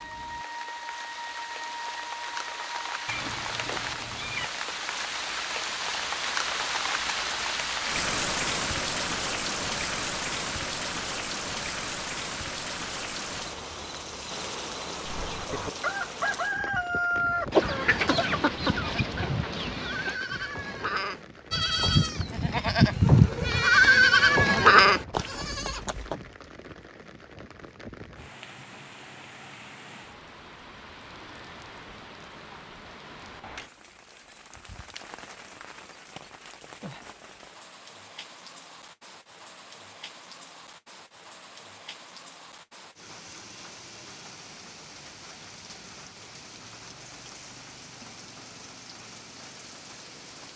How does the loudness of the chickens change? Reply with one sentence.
The loudness of the chickens goes up, then down.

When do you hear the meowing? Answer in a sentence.
The meowing can be heard from 3.0 to 4.5 s.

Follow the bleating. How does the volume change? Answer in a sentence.
The loudness of the bleating goes up.